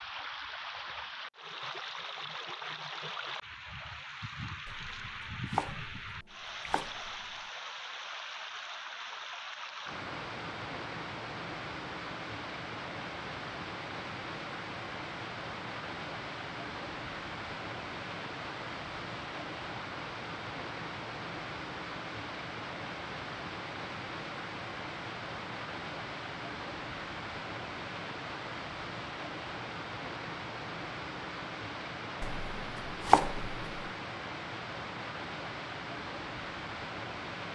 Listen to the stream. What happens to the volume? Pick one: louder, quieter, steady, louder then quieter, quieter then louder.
steady.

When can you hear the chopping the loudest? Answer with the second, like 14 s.
33 s.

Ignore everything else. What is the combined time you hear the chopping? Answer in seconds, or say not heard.
4 s.